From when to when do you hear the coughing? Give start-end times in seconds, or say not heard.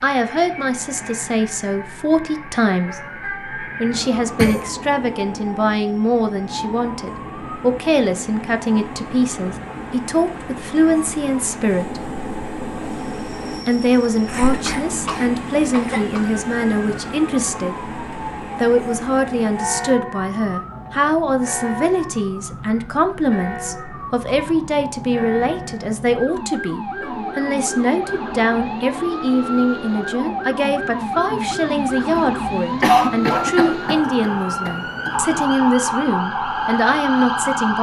3.9-4.7, 14.2-16.2, 32.8-35.5.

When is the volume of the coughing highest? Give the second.
33 s.